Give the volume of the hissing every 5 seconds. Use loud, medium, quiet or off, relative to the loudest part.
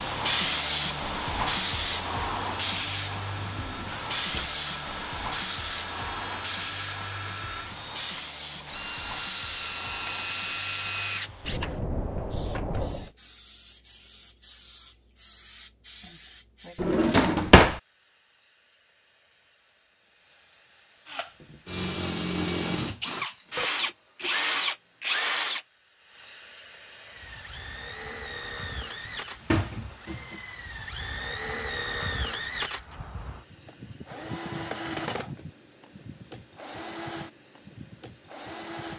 loud, medium, quiet, quiet, quiet, quiet, quiet, quiet.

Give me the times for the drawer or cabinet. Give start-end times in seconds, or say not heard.
3.4-4.5, 16.8-17.8, 29.1-30.4.